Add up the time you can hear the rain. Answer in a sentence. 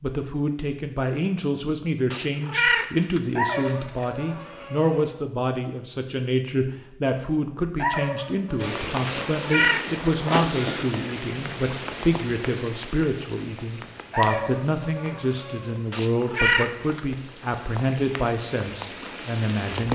The rain can be heard for 11 seconds in total.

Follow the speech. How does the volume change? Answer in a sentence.
The loudness of the speech stays about the same.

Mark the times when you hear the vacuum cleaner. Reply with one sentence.
The vacuum cleaner can't be heard in this clip.